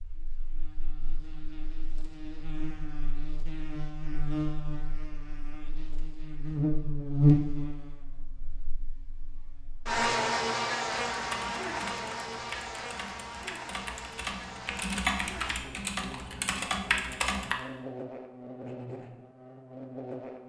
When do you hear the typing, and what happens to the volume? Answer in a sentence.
The typing can be heard from 11.1 to 17.6 s, getting louder.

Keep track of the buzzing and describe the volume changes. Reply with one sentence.
The volume of the buzzing goes up, then down.